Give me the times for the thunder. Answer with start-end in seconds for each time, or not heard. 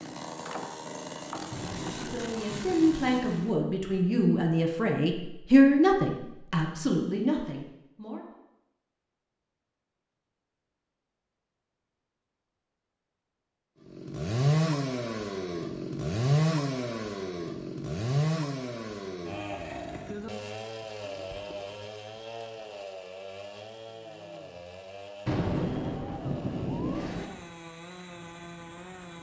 1.5-3.5, 25.2-27.2.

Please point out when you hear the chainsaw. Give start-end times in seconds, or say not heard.
0.0-3.5, 13.8-29.1.